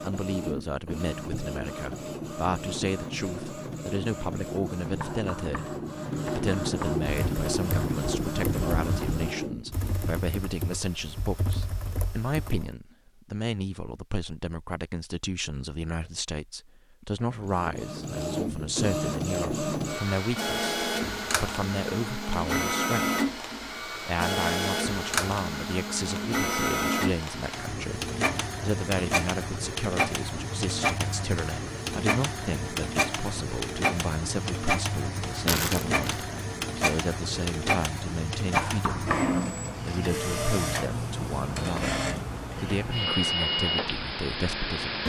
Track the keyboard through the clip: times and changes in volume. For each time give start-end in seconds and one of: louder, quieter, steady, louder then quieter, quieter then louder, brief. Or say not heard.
7.0-12.7 steady.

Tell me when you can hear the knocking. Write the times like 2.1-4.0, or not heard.
5.0-7.0, 38.5-39.4.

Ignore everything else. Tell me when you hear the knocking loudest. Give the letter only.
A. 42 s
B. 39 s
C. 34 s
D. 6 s
B.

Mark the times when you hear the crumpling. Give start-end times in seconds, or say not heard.
35.5-36.2.